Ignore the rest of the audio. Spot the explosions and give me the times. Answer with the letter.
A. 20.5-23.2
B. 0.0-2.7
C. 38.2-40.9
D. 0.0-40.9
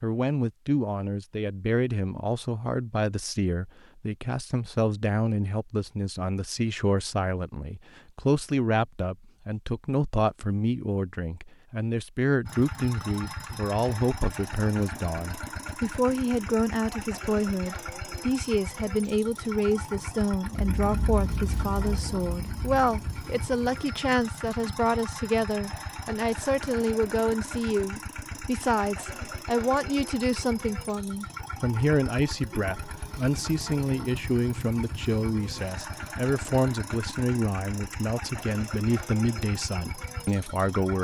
A.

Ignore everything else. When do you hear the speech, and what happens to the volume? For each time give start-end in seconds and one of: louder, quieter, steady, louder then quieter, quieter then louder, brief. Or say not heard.
0.0-40.9 steady.